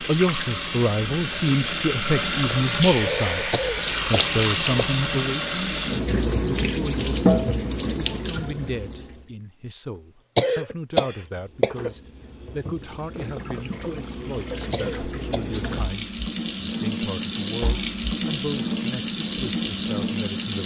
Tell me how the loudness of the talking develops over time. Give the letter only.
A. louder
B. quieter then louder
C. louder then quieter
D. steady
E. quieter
E.